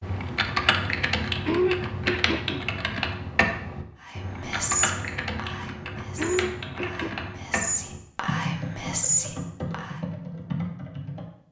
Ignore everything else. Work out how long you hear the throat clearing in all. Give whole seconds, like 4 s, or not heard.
2 s.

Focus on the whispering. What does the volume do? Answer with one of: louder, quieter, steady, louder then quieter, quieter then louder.
quieter then louder.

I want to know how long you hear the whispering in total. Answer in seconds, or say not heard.
6 s.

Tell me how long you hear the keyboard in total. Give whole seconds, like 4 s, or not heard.
11 s.